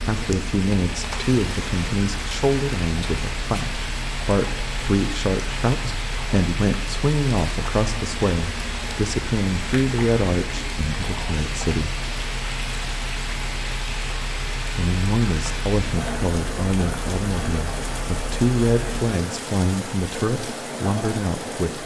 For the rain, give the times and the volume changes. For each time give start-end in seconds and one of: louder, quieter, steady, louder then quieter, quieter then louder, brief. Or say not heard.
0.0-21.8 steady.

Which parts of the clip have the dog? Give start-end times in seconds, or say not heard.
not heard.